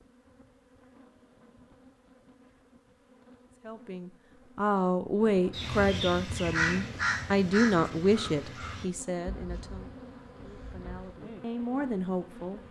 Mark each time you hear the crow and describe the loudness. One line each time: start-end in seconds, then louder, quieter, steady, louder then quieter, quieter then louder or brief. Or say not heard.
5.5-11.2 quieter.